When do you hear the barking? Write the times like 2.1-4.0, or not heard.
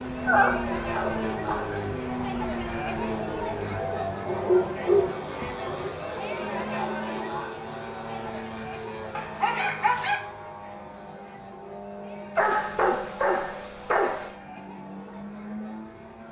0.2-1.8, 4.2-5.9, 9.2-10.2, 12.3-14.3.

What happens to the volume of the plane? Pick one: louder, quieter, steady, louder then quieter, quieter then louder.
quieter.